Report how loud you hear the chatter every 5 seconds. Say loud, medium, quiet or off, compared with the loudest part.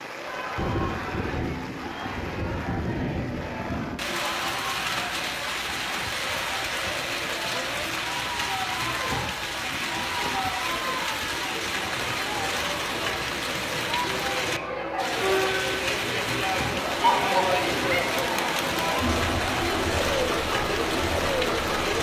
medium, medium, medium, loud, loud.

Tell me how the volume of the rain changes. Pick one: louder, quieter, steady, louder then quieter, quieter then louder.
steady.